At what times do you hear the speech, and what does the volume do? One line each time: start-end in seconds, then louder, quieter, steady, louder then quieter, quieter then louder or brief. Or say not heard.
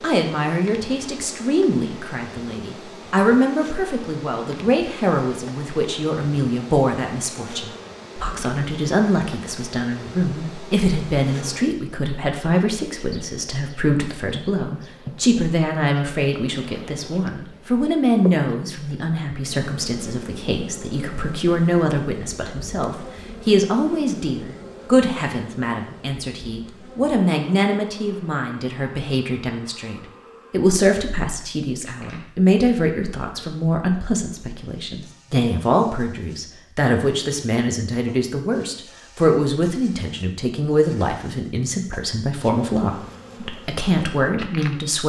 0.0-45.0 steady.